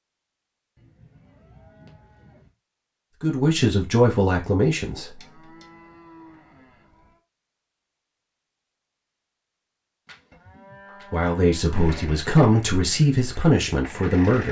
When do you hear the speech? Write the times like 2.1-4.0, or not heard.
3.2-5.2, 11.1-14.4.